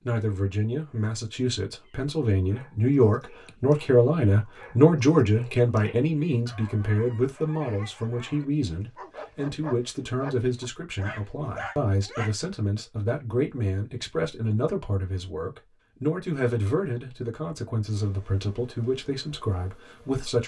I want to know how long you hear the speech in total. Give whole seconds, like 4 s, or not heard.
20 s.